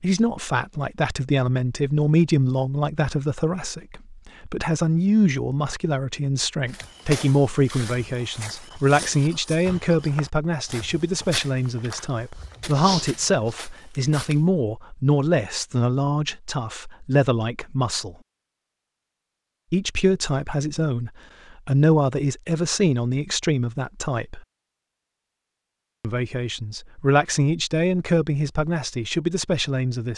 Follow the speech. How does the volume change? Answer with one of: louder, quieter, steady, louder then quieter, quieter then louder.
steady.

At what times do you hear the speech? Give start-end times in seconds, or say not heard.
0.0-18.1, 19.7-24.4, 26.0-30.1.